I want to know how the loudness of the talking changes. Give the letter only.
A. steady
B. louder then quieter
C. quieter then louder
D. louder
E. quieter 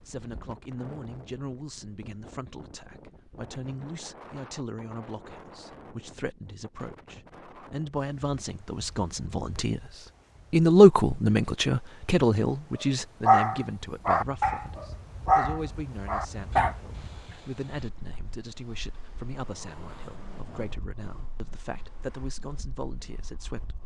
B.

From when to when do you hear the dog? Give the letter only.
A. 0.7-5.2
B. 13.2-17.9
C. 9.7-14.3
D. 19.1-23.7
B.